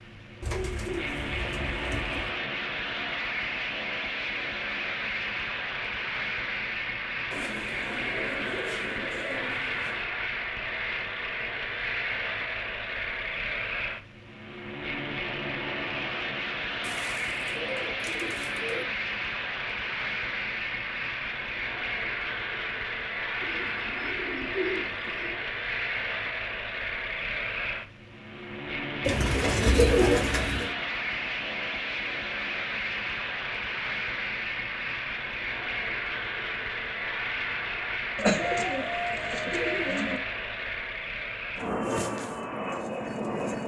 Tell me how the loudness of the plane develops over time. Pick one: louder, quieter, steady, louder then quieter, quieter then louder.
steady.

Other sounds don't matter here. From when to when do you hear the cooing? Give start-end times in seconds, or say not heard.
0.4-2.4, 7.3-10.1, 16.8-18.9, 23.4-25.4, 29.0-30.7, 38.1-40.2.